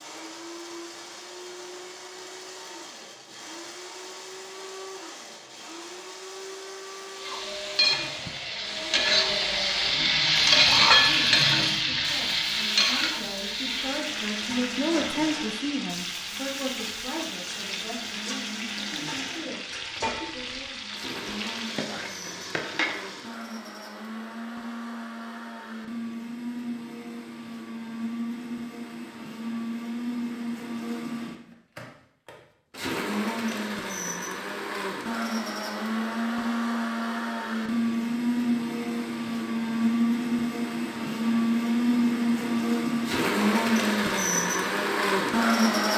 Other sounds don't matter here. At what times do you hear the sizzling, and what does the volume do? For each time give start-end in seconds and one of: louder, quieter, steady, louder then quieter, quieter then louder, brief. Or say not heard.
7.2-23.4 quieter.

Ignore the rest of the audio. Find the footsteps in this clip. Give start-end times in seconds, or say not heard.
not heard.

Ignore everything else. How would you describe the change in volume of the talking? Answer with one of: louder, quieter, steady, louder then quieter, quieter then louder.
louder then quieter.